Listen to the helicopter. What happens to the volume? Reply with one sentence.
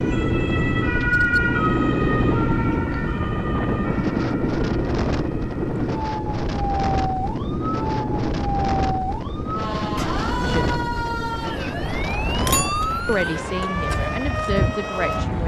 The loudness of the helicopter goes down.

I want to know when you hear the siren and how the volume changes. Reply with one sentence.
The siren can be heard from 0.0 to 15.4 s, getting quieter then louder.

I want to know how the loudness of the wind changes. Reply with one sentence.
The loudness of the wind stays about the same.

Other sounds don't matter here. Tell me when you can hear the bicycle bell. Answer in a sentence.
You can hear the bicycle bell from 12.4 to 13.2 s.